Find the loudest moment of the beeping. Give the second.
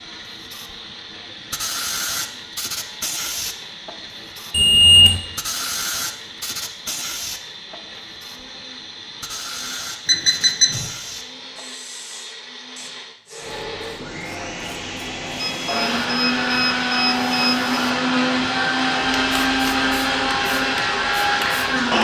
5 s.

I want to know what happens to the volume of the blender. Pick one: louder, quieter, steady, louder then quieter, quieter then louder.
louder.